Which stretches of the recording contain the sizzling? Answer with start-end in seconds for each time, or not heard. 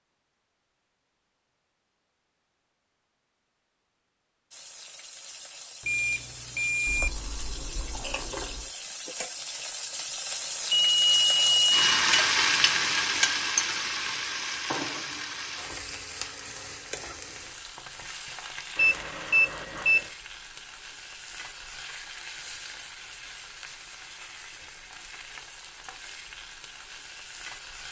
4.5-27.8.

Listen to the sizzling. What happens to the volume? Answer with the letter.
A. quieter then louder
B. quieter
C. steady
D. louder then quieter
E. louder
D.